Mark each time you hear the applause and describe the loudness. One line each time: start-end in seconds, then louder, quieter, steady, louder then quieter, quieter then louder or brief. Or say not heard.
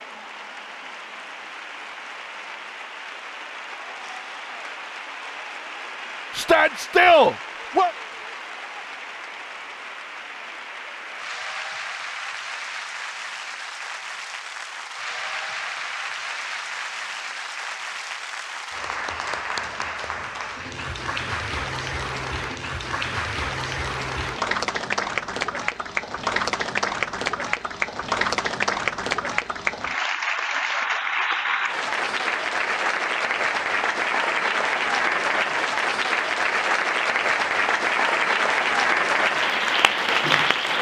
0.0-40.7 louder.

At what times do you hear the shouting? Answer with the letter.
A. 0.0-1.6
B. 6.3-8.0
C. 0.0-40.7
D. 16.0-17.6
B.